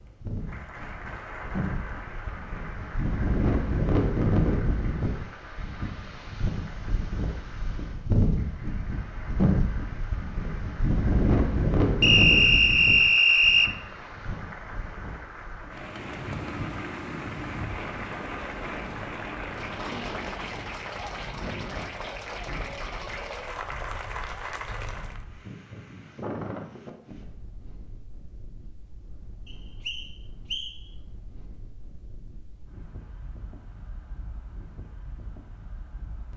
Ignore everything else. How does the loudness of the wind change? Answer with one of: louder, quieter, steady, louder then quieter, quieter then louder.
quieter.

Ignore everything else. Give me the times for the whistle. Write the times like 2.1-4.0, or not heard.
12.0-13.7, 29.4-30.8.